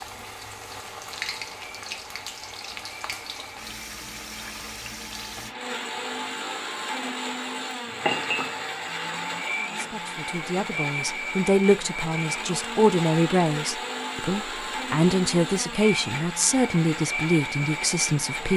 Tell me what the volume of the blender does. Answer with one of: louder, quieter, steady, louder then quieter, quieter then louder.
louder.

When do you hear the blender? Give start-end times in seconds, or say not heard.
0.0-18.5.